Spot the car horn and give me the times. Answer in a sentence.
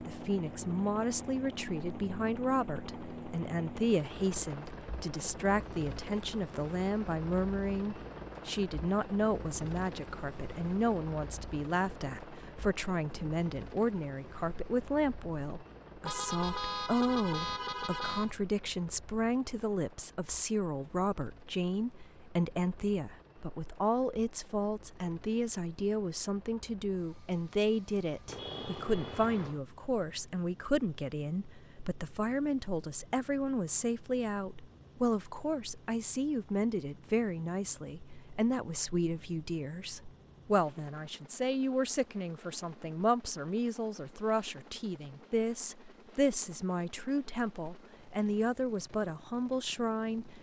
The car horn can be heard from 16.1 to 18.4 s and from 28.2 to 29.6 s.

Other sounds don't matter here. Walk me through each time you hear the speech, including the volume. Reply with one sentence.
The speech can be heard from 0.1 to 50.3 s, at a steady volume.